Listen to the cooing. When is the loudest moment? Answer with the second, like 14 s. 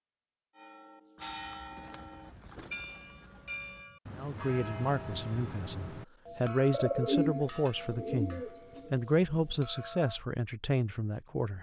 7 s.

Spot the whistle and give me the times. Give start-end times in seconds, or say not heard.
not heard.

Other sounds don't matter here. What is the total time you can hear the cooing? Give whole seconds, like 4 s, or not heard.
5 s.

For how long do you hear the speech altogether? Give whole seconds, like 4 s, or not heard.
7 s.